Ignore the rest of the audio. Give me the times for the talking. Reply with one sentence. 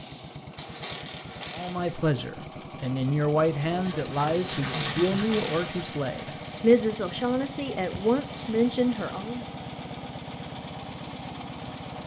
The talking can be heard from 1.5 to 9.4 s.